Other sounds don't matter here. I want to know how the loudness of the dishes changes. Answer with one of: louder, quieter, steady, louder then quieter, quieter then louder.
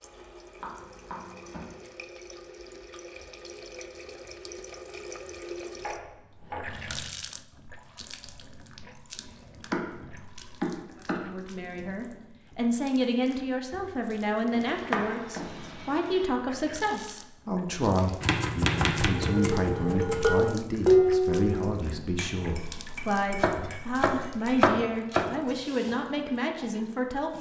louder then quieter.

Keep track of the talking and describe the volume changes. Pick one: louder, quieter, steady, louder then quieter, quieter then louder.
steady.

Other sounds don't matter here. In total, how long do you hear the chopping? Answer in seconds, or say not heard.
10 s.